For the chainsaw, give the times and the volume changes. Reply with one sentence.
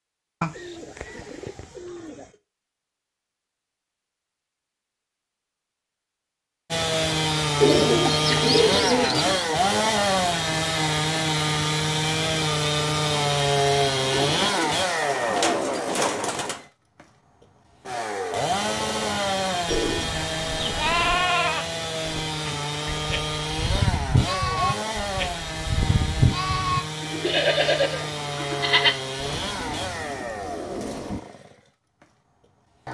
The chainsaw can be heard from 6.7 to 32.8 s, getting quieter.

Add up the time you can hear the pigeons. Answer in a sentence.
The pigeons can be heard for 10 seconds in total.